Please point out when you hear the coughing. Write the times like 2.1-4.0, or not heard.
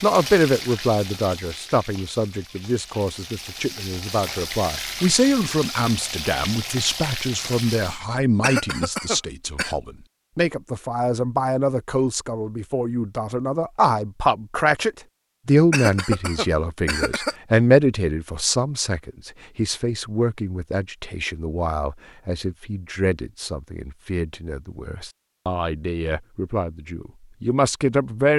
8.4-9.8, 15.7-17.4.